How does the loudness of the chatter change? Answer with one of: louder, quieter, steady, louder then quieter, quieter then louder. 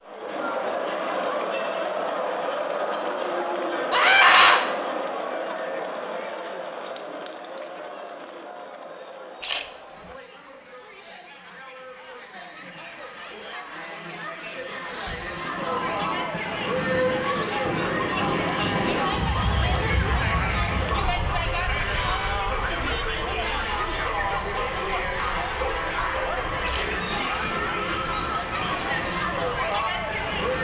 quieter then louder.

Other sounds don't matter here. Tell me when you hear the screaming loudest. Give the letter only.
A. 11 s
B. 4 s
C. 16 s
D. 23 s
B.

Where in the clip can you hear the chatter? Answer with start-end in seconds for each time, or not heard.
0.0-30.5.